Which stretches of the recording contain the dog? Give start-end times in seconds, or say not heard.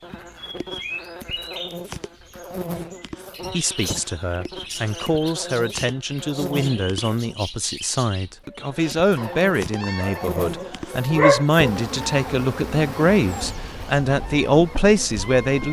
9.8-11.7.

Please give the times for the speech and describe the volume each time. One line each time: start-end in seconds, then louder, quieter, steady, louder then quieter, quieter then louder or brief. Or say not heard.
3.5-15.6 louder.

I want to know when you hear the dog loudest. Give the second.
11 s.